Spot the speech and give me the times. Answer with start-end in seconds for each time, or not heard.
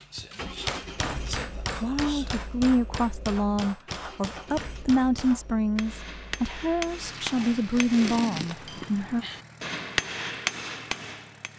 1.8-9.2.